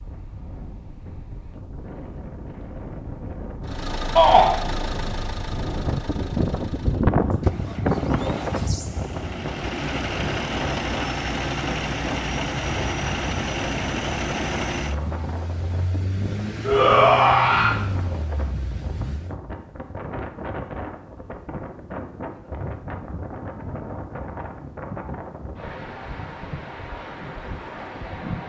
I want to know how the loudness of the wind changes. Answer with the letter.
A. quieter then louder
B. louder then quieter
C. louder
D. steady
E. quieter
B.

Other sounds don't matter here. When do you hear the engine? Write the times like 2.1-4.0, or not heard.
3.6-19.4.